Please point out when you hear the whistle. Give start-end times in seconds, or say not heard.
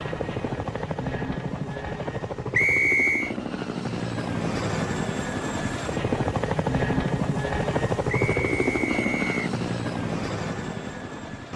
2.5-3.4, 8.1-9.5.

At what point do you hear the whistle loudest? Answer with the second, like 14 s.
3 s.